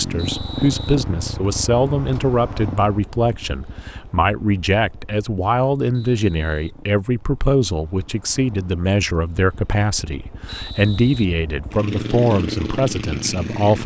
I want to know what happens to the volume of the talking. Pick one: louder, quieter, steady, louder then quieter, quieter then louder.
steady.